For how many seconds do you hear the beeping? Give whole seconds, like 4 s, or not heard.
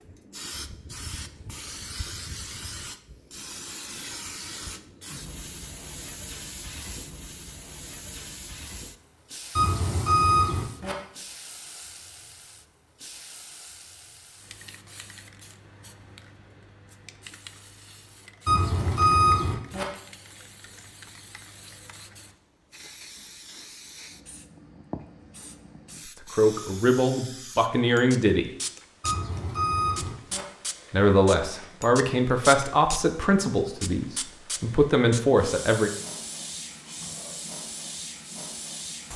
4 s.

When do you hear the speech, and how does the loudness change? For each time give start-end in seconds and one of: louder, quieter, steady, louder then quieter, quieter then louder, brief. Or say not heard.
26.3-28.5 brief
30.9-35.9 quieter then louder.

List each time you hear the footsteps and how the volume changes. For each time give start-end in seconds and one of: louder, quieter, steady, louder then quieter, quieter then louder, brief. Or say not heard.
not heard.